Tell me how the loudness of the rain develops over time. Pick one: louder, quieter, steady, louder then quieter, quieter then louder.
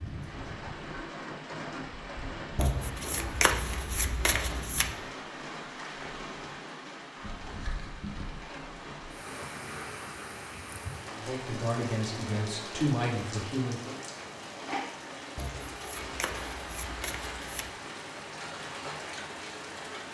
steady.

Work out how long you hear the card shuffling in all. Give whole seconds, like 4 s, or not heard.
5 s.